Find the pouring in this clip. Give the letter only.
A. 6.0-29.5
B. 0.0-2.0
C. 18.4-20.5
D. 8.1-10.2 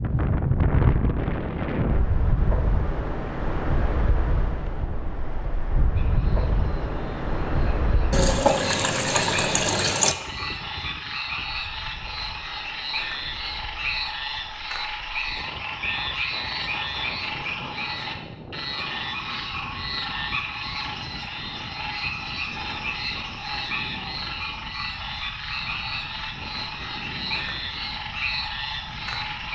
D.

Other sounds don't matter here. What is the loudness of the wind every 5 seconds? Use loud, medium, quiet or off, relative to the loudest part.
loud, loud, quiet, quiet, quiet, quiet.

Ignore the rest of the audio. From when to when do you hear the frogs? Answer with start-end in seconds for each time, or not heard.
6.0-29.5.